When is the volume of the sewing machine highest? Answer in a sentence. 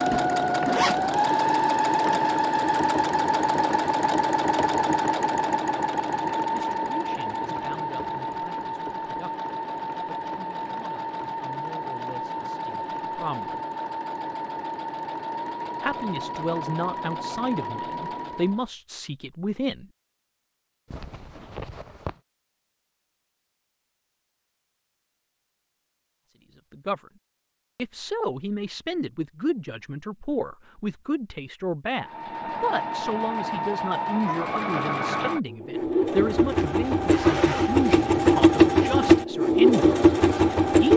The loudest moment of the sewing machine is at 39 seconds.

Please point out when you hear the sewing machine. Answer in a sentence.
The sewing machine can be heard from 0.0 to 18.7 s and from 32.0 to 40.9 s.